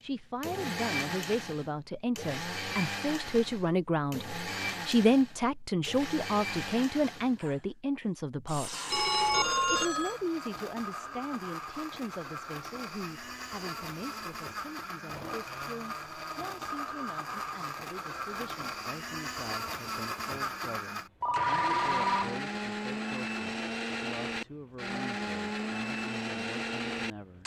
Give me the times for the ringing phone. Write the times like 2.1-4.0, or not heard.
8.9-10.2, 21.2-22.4.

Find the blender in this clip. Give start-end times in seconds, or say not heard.
0.4-27.4.